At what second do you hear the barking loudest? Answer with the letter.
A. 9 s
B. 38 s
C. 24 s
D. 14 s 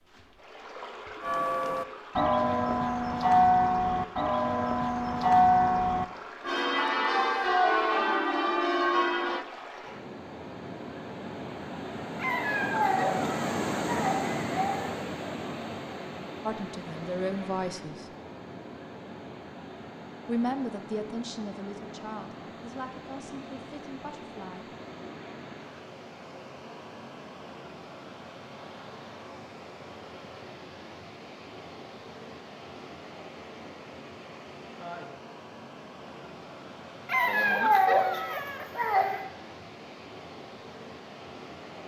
B.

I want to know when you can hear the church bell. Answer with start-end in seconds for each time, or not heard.
1.2-9.4.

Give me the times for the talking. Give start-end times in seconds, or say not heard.
16.4-18.1, 20.2-24.7.